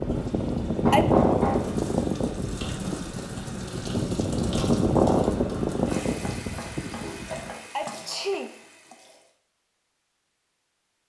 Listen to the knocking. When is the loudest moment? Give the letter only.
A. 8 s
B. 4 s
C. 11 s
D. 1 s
D.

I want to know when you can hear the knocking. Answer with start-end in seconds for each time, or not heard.
0.8-1.6, 5.9-8.0.